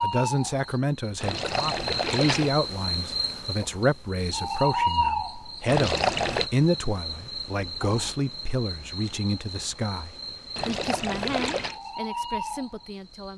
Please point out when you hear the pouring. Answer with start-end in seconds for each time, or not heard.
1.2-2.5, 5.7-6.5, 10.6-11.8.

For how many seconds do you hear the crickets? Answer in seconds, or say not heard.
13 s.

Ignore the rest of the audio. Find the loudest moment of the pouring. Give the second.
6 s.